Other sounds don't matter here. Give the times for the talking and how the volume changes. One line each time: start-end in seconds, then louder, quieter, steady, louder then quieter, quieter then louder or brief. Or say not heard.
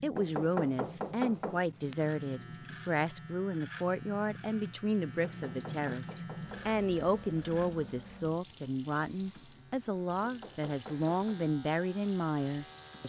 0.0-13.0 steady.